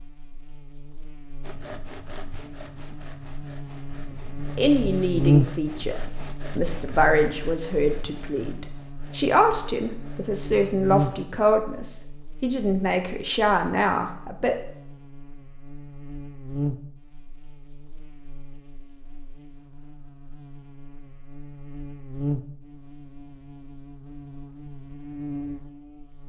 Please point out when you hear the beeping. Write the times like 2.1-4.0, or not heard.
not heard.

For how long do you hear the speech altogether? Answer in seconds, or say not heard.
10 s.